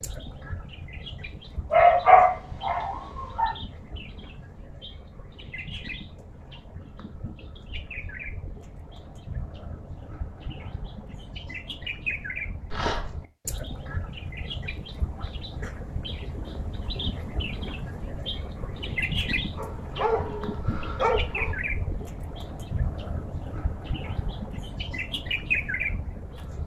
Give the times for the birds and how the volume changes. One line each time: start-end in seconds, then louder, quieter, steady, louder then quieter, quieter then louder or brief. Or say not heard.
0.0-26.6 louder.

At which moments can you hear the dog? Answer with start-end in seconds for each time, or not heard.
1.7-3.5, 12.7-13.1, 19.6-21.6.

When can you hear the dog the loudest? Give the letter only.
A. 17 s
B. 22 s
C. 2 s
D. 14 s
C.